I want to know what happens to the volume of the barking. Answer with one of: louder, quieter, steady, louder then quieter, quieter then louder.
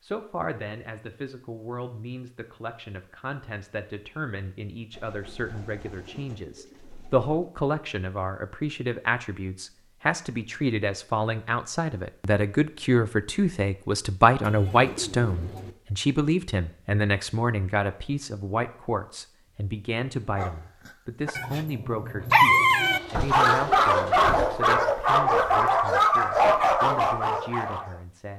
louder.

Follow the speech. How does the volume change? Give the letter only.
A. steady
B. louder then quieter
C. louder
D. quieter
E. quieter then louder
B.